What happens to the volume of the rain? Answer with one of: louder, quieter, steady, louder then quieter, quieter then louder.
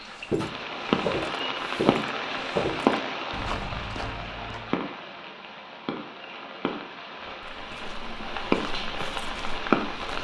quieter then louder.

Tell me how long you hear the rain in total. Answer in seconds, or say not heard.
10 s.